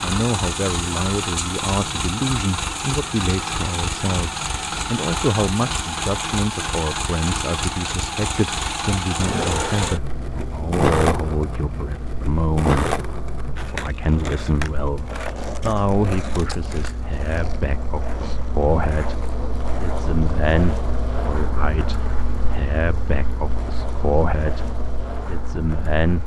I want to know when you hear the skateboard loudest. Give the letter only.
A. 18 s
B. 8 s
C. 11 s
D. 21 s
C.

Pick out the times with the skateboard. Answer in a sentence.
You can hear the skateboard from 9.2 to 26.2 s.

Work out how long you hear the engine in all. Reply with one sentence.
You can hear the engine for 26 seconds altogether.